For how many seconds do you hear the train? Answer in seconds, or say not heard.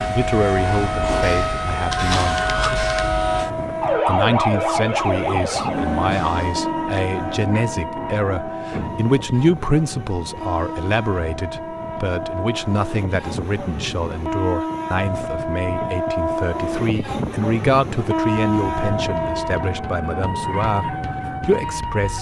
17 s.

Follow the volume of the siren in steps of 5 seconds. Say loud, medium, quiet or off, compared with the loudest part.
loud, medium, quiet, medium, medium.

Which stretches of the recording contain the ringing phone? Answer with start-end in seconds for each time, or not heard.
1.9-3.1.